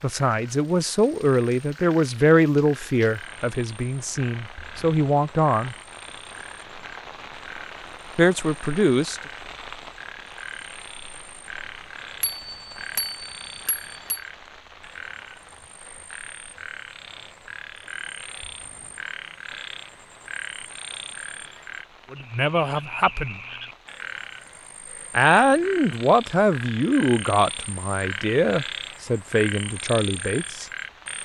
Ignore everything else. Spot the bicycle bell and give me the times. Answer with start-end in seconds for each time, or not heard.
12.2-14.2.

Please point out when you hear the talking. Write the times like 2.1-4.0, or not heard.
0.0-5.8, 8.2-9.2, 22.1-23.4, 25.1-30.6.